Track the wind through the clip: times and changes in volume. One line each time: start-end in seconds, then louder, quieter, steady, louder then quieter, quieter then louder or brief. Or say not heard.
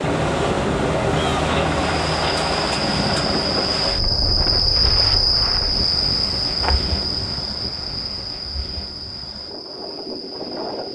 0.0-10.9 quieter.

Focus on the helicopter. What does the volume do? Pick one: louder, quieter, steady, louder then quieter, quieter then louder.
quieter.